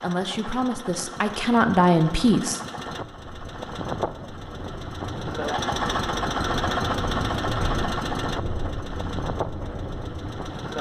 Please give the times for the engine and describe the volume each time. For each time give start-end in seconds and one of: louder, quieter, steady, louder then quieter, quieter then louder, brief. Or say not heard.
0.0-10.7 louder then quieter.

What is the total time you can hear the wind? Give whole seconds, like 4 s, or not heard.
8 s.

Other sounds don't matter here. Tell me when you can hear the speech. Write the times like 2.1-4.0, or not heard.
0.0-2.6.